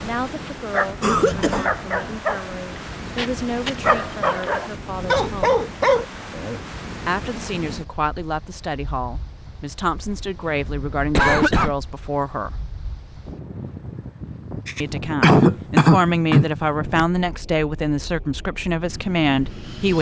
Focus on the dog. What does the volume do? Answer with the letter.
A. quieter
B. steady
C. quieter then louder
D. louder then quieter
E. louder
E.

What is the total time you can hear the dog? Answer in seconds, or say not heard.
6 s.